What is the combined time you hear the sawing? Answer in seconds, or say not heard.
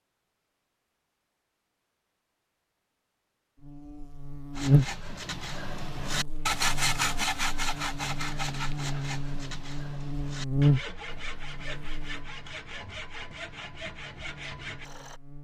11 s.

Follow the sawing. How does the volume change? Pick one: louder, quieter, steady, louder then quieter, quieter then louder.
quieter.